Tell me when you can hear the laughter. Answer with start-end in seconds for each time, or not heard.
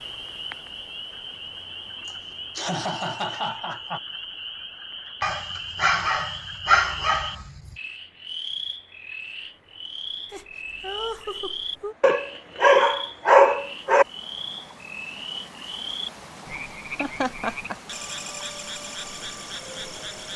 2.0-4.0, 10.3-11.9, 17.0-17.8.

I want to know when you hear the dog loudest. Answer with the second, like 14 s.
13 s.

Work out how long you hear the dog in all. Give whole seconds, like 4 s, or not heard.
4 s.